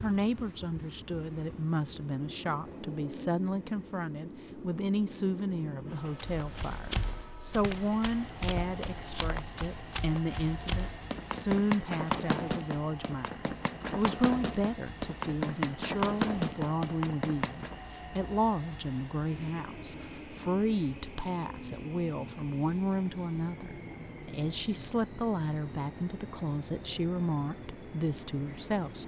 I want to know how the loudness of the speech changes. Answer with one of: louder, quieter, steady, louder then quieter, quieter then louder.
steady.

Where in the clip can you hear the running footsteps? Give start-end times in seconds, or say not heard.
6.2-17.8.